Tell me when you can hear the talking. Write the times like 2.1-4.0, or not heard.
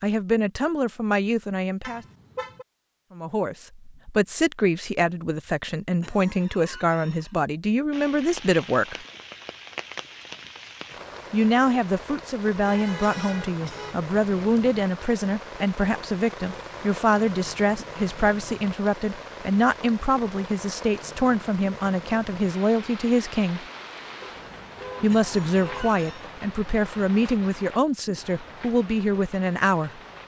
0.0-2.0, 3.1-9.1, 11.3-23.6, 25.0-30.0.